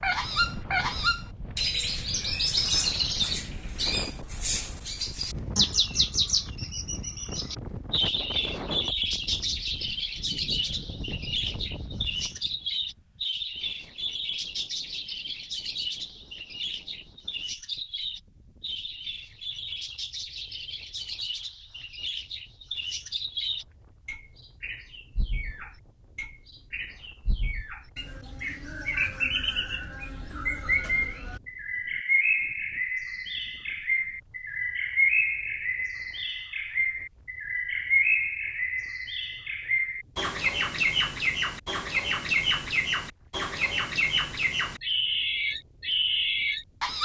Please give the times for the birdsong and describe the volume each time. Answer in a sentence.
The birdsong can be heard from 0.0 to 46.9 s, getting quieter then louder.